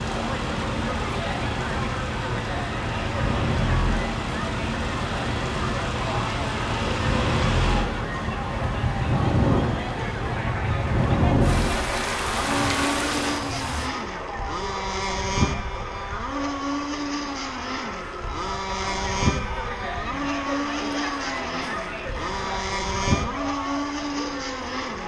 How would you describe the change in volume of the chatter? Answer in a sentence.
The volume of the chatter stays about the same.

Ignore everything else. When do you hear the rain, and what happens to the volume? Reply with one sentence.
You can hear the rain from 0.0 to 13.9 s, getting louder.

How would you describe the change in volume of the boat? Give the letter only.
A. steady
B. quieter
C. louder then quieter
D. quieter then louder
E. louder
A.